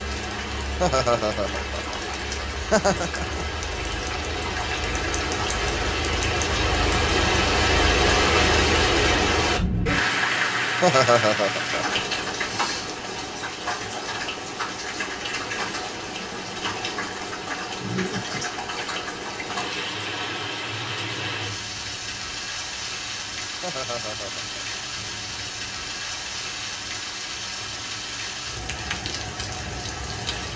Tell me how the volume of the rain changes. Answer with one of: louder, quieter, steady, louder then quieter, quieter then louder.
louder then quieter.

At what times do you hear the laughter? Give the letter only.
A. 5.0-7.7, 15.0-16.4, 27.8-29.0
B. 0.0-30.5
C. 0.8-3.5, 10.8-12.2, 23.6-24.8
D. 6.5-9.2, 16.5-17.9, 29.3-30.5
C.